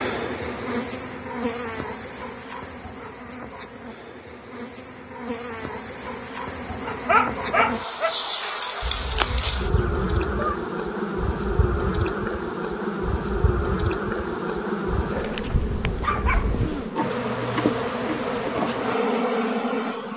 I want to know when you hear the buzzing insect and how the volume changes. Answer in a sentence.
The buzzing insect can be heard from 0.0 to 20.1 s, getting louder.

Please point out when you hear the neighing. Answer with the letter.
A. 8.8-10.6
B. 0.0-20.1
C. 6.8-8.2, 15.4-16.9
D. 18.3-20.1
A.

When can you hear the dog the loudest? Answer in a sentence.
The loudest moment of the dog is at 7 seconds.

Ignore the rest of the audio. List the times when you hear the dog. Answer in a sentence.
The dog can be heard from 6.8 to 8.2 s and from 15.4 to 16.9 s.